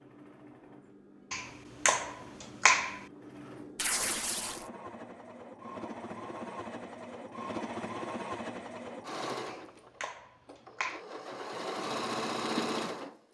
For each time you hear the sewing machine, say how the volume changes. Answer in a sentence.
You can hear the sewing machine from 0.0 to 13.2 s, getting louder.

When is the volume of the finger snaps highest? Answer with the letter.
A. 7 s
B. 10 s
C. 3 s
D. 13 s
C.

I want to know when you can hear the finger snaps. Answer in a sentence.
You can hear the finger snaps from 1.3 to 3.0 s and from 9.4 to 11.0 s.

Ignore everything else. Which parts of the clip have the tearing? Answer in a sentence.
You can hear the tearing from 3.8 to 4.7 s.